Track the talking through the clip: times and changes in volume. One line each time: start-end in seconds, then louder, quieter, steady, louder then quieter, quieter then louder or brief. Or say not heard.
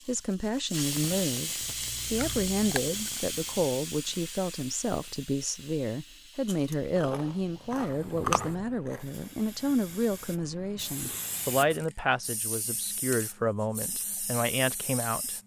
0.1-15.4 steady.